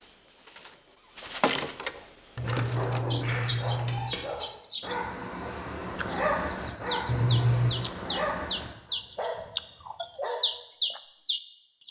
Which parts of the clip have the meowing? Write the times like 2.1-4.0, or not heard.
2.4-4.1, 7.0-7.7.